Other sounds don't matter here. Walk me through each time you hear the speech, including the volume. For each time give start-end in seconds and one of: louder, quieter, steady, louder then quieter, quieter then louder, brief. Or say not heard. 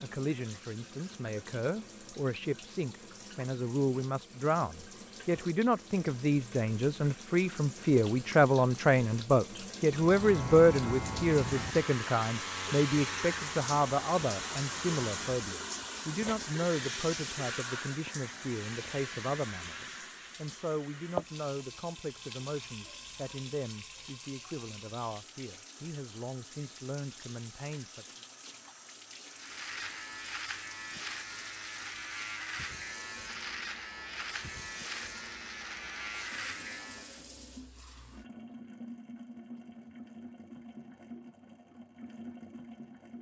0.0-28.1 louder then quieter.